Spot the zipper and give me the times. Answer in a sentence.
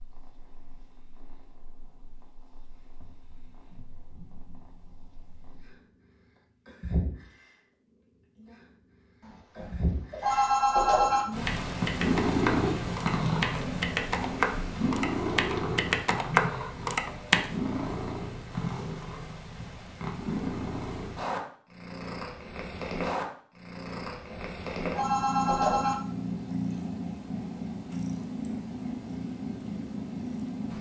You can hear the zipper from 13.5 to 14.8 s.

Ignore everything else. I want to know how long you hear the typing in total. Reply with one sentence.
You can hear the typing for 6 seconds altogether.